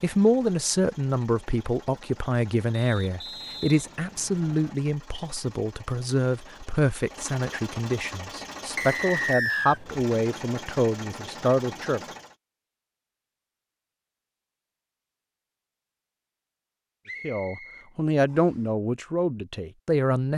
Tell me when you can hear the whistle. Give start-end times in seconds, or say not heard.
2.7-4.8, 8.8-9.8, 17.1-18.6.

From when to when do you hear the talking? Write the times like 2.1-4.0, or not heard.
0.0-12.0, 17.2-20.3.